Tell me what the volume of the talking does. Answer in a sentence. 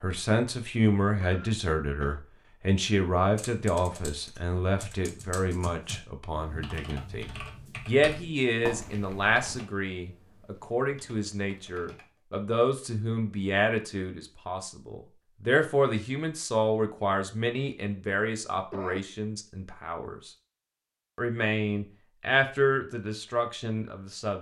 The volume of the talking stays about the same.